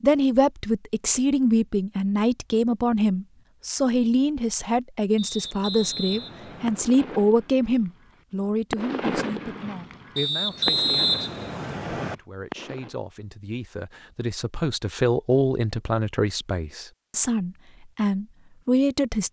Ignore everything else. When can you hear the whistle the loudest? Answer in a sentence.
The volume of the whistle peaks at 11 seconds.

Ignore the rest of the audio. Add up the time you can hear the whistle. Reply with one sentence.
You can hear the whistle for 4 seconds altogether.